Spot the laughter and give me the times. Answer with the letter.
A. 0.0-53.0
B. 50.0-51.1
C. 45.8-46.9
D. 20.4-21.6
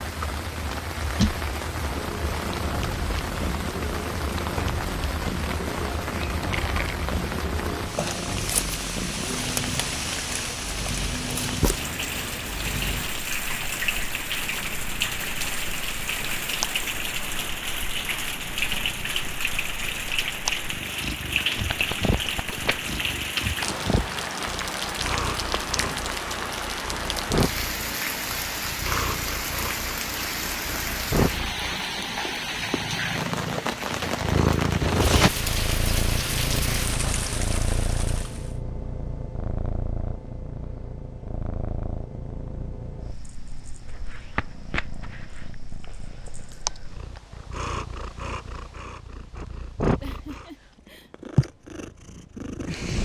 B.